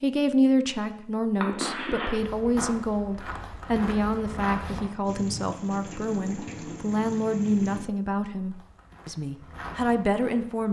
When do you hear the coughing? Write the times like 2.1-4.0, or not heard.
1.4-2.2.